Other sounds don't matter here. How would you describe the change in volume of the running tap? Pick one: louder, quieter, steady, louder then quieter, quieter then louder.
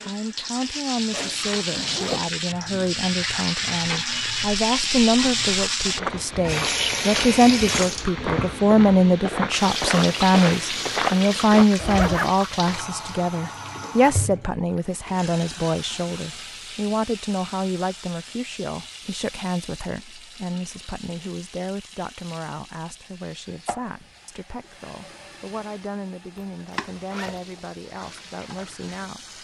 quieter.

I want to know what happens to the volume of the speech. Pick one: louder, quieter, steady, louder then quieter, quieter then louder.
louder then quieter.